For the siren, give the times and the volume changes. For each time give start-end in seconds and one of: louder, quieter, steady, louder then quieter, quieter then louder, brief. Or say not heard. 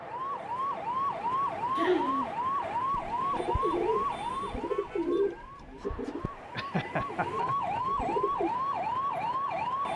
0.0-9.9 quieter then louder.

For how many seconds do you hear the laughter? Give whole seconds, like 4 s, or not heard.
2 s.